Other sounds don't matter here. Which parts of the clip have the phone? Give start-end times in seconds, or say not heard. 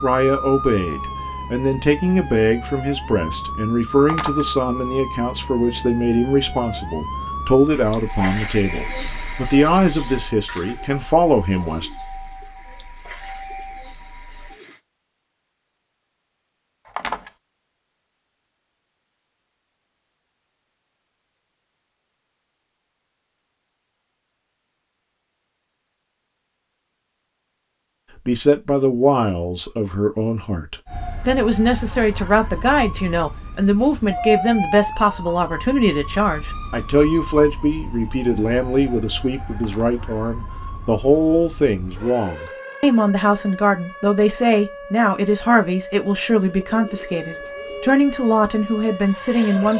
4.0-4.5, 16.9-17.3, 39.5-40.0.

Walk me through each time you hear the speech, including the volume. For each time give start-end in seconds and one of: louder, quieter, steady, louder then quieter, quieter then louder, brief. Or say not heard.
0.0-11.9 steady
28.1-49.7 steady.